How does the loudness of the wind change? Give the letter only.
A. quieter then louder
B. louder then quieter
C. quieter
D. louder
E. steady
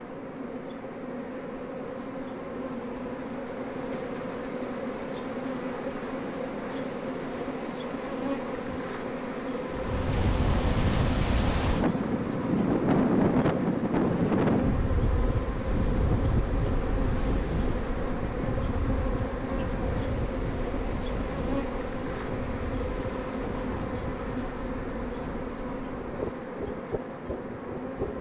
C.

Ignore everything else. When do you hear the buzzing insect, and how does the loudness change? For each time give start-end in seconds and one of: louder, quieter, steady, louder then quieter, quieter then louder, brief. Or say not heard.
0.0-28.1 steady.